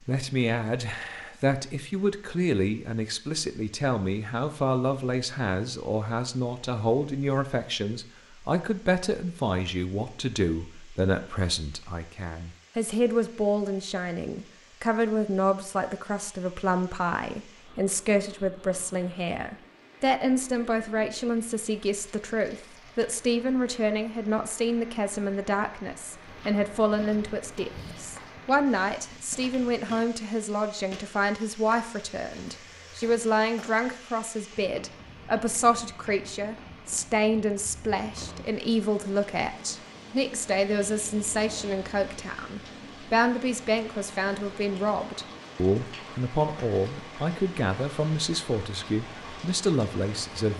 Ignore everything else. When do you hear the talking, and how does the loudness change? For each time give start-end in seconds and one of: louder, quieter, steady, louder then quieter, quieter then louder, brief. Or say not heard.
0.1-50.5 steady.